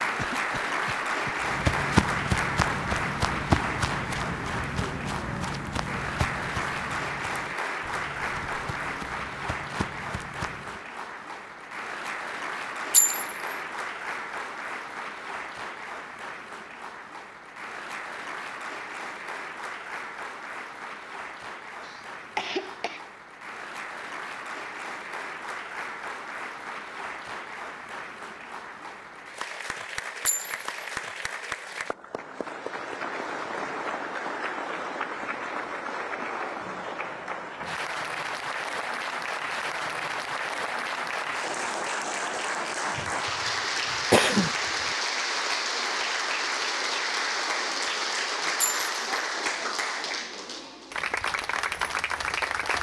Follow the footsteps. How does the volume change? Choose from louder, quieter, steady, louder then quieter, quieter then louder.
quieter.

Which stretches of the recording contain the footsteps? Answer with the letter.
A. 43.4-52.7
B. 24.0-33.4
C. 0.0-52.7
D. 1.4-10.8
D.